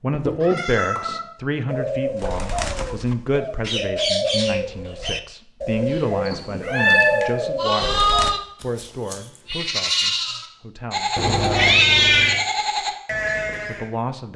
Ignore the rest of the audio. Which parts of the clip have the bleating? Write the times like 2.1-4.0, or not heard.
5.9-13.9.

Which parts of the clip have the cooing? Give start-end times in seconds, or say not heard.
1.6-8.3.